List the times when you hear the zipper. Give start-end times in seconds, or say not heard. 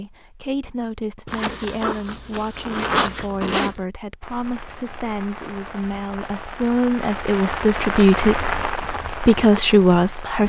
1.2-3.8.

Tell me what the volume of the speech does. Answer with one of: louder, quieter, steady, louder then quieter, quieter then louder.
louder.